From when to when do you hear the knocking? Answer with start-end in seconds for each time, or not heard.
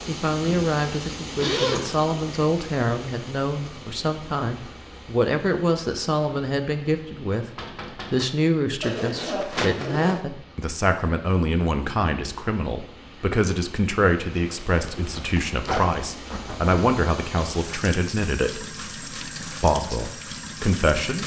7.5-8.3.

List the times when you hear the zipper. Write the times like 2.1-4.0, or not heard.
1.4-1.9, 8.8-10.2, 14.4-16.8.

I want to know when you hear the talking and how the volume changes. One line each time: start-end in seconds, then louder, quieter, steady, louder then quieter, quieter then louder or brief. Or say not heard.
0.1-21.2 steady.